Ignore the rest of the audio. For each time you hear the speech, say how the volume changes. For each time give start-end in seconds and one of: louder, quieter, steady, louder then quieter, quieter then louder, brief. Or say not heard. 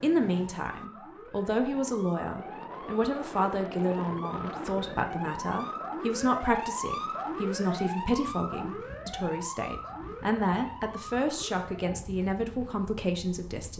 0.0-13.7 steady.